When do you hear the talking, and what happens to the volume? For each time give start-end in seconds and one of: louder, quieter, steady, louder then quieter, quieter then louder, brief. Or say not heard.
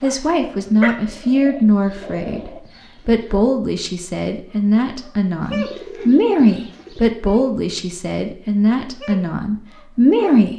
0.0-10.5 steady.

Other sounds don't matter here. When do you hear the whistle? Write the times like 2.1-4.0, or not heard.
not heard.